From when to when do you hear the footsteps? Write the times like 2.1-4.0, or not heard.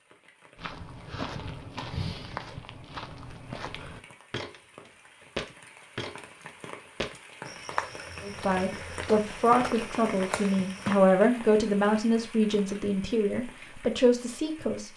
0.6-11.0.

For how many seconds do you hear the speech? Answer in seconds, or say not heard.
7 s.